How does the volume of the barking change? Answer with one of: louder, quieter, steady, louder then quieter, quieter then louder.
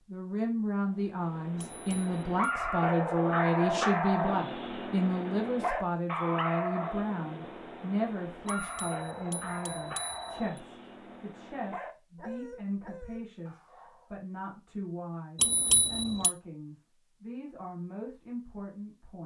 quieter.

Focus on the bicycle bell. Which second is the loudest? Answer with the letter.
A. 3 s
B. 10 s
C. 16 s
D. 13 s
C.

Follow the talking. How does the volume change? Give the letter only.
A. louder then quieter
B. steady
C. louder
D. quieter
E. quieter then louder
D.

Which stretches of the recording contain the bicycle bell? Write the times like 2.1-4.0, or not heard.
1.6-2.5, 8.4-10.6, 15.3-16.4.